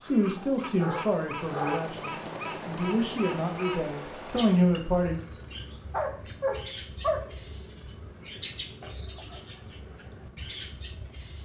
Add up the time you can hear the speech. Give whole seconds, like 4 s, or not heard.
5 s.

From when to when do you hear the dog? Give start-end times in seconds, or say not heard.
0.3-1.9, 5.9-7.3.